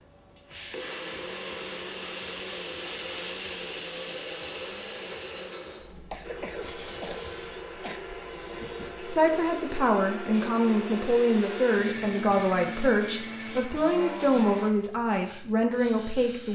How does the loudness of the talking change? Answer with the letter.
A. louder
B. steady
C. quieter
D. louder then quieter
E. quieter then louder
B.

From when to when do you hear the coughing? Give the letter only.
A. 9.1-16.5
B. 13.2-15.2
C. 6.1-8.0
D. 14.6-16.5
C.